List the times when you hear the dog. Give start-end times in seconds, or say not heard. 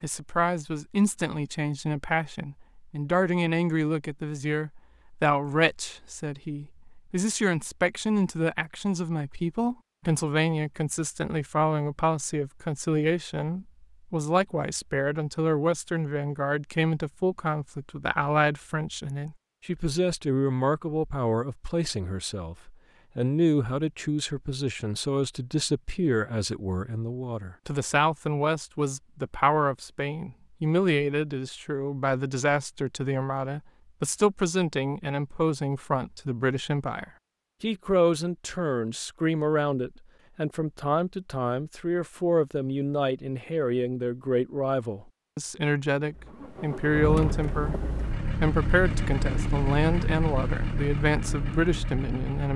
not heard.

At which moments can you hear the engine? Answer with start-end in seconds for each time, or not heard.
46.1-52.5.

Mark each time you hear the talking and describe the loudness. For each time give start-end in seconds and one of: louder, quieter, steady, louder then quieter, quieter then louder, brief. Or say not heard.
0.0-52.5 steady.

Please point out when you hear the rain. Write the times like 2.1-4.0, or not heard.
not heard.